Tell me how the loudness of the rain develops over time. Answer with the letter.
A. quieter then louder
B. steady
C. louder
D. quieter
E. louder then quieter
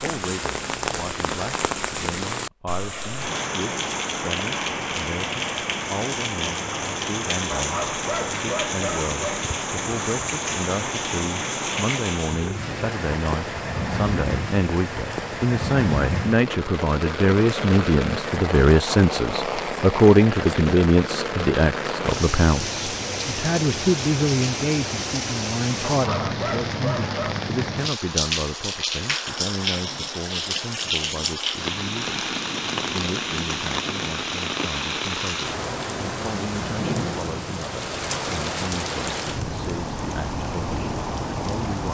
B.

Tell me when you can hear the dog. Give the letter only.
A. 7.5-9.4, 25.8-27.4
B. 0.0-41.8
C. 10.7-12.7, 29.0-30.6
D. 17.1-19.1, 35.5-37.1
A.